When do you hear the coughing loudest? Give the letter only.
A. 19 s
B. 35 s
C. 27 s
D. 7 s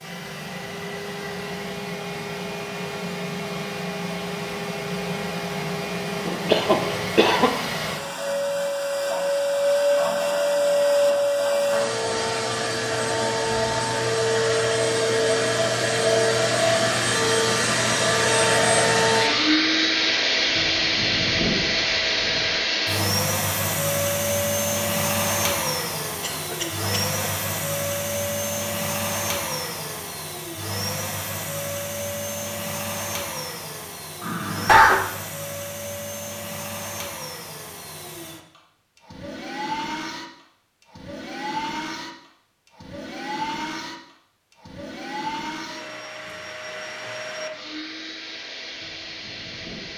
B.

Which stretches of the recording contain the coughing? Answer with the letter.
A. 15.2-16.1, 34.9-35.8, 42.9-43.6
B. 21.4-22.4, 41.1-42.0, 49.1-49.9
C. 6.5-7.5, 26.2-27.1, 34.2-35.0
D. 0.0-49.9
C.